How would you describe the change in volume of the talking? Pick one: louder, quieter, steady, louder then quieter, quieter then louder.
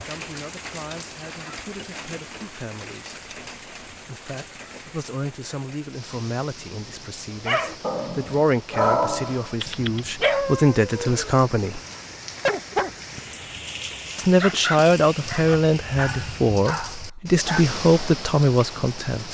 louder.